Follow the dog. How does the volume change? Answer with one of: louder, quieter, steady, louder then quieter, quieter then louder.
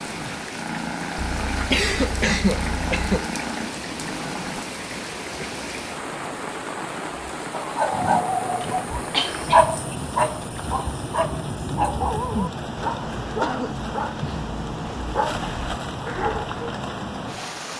quieter.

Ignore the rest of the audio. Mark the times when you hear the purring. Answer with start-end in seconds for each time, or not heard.
0.0-4.7.